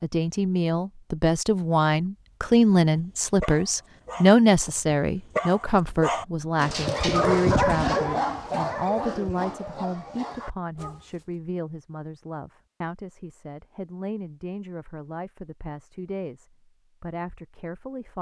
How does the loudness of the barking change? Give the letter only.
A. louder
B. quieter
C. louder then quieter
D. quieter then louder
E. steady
C.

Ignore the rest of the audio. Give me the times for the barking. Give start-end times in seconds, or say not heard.
2.5-11.3.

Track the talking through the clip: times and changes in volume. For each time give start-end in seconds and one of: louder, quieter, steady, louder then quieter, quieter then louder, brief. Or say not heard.
0.0-18.1 quieter.